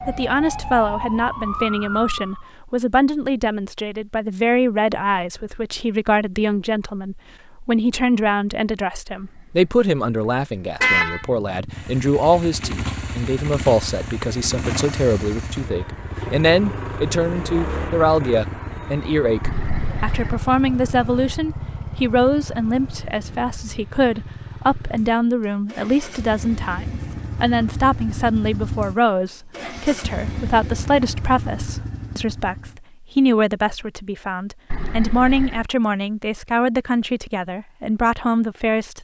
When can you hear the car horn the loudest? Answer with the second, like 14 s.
11 s.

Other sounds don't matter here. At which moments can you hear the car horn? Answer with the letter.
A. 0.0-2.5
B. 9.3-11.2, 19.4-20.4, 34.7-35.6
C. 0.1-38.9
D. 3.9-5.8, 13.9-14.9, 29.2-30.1
B.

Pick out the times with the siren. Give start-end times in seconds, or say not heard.
0.0-2.5.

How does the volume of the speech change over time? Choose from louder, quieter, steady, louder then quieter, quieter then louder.
steady.